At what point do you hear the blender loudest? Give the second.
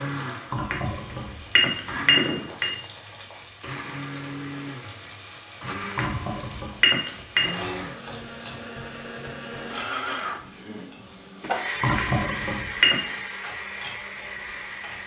12 s.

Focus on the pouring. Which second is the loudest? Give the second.
12 s.